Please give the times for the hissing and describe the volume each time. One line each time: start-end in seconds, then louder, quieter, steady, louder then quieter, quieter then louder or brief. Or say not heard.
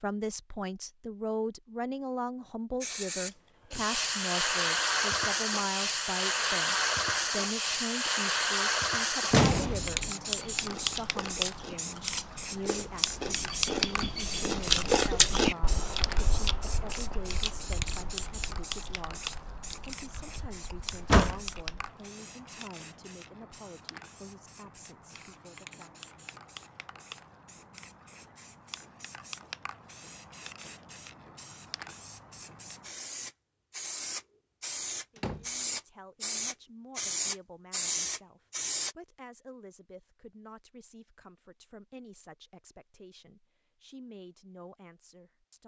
2.8-39.0 quieter then louder.